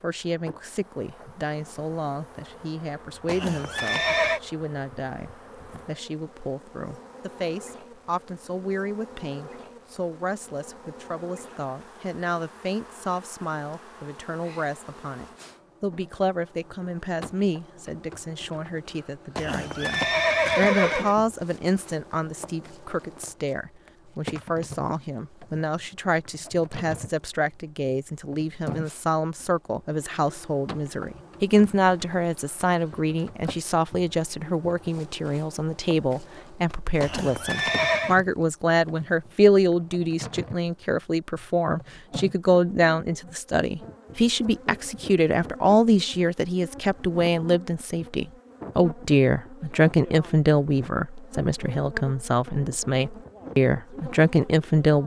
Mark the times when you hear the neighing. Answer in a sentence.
You can hear the neighing from 3.2 to 4.4 s, from 19.4 to 21.1 s and from 37.0 to 38.1 s.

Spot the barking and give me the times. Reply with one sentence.
You can't hear the barking here.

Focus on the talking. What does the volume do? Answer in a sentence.
The loudness of the talking goes up.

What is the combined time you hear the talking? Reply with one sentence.
The talking can be heard for 55 seconds in total.